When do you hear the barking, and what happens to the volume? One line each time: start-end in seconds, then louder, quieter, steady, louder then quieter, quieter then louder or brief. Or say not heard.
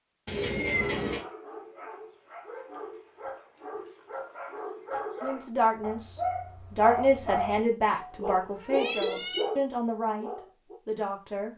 0.8-10.8 louder.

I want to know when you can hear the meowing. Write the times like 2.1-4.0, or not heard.
0.2-1.2, 7.8-9.4.